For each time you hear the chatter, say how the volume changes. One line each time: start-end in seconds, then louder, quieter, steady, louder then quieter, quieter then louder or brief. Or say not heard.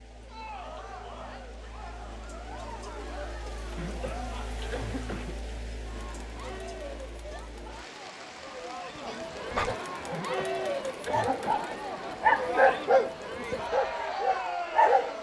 0.1-15.1 louder.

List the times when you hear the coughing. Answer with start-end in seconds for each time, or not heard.
3.8-5.6, 10.1-11.7.